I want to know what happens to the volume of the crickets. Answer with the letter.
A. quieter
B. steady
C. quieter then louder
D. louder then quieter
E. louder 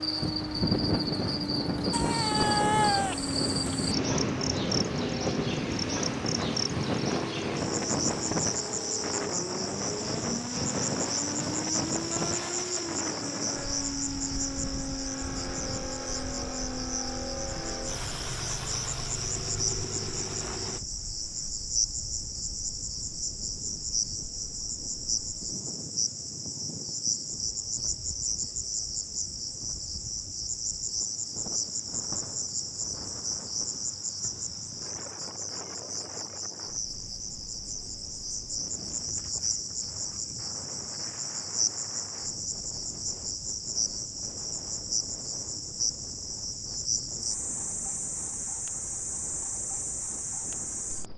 B.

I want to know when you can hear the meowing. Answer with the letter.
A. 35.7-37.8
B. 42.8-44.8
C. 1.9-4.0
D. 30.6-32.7
C.